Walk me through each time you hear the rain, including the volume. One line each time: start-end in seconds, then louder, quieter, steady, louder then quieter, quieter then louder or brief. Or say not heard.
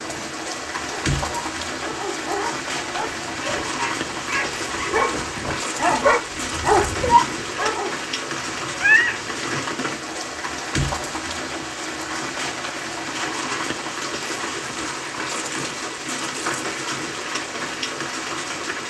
0.0-18.8 steady.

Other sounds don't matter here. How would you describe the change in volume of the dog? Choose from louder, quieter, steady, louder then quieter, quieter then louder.
louder.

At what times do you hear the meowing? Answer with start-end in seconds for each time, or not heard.
8.3-9.7.